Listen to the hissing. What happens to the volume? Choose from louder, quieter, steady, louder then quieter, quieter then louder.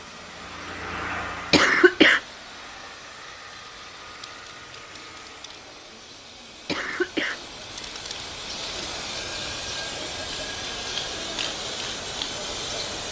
louder.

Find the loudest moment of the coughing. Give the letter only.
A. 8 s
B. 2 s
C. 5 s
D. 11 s
B.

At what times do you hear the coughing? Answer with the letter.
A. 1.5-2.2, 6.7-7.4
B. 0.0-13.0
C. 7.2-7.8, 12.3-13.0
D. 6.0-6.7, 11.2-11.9
A.